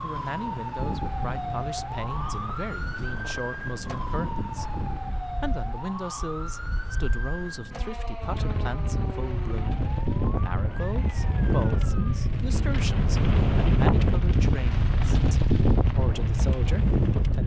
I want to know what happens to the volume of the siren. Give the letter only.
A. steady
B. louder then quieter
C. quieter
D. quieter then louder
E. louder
C.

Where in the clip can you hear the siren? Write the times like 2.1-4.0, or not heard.
0.0-12.4.